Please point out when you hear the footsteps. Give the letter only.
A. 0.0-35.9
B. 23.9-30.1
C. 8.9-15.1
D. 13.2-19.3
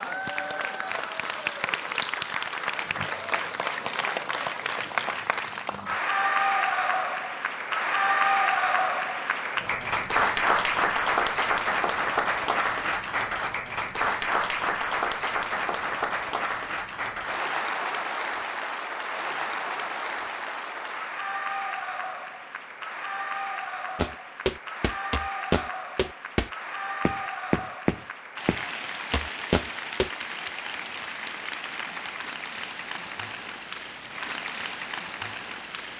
B.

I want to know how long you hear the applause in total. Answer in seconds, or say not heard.
36 s.